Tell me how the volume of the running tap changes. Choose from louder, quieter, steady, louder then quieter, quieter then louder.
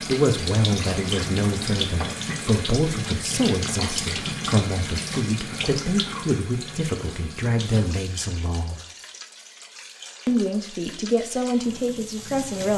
quieter.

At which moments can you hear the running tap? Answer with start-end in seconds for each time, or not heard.
0.0-12.7.